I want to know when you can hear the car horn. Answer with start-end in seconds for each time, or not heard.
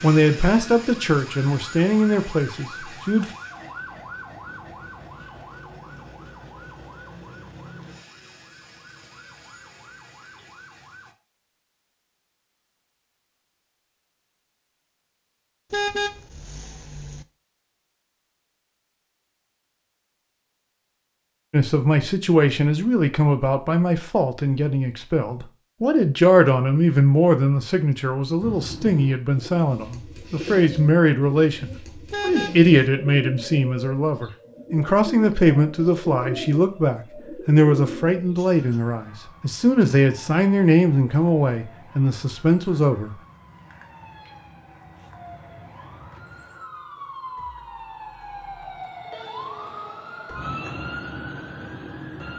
15.7-17.2, 32.1-32.7.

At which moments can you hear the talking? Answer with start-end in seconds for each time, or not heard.
0.0-3.3, 21.5-43.1.